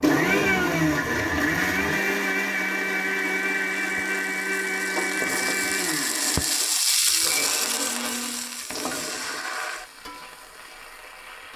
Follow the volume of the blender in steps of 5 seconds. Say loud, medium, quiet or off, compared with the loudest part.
loud, medium, off.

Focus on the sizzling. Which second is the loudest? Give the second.
7 s.